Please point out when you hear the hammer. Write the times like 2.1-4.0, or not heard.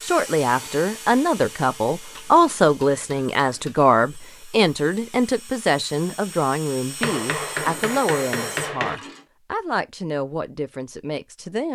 2.1-3.7, 7.0-8.9.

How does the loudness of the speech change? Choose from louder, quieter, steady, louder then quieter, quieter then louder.
quieter.